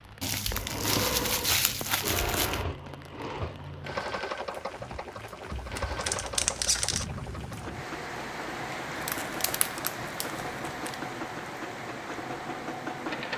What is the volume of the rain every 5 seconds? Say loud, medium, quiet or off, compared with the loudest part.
medium, loud, loud.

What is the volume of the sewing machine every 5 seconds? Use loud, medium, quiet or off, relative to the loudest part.
loud, medium, loud.